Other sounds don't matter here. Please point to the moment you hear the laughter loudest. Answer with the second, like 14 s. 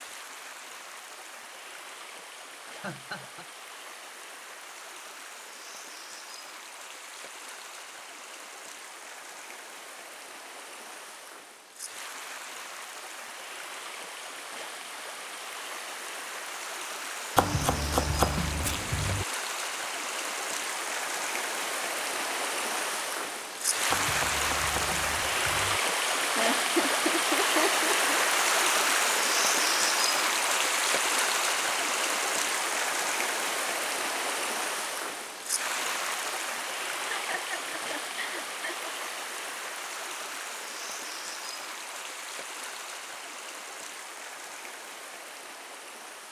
27 s.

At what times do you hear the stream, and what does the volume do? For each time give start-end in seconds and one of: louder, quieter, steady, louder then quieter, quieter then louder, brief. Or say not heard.
0.0-46.2 louder then quieter.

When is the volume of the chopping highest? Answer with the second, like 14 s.
18 s.